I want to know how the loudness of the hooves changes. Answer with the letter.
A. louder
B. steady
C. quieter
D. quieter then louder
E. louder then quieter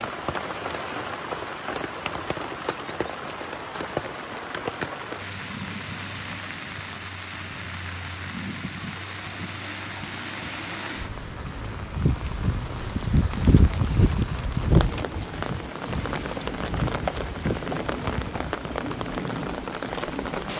C.